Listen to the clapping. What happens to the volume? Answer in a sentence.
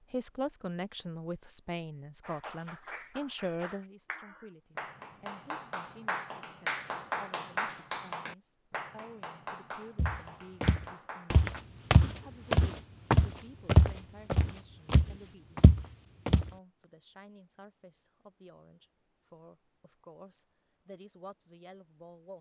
The volume of the clapping goes up, then down.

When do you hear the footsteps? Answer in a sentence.
The footsteps can be heard from 9.9 to 16.5 s.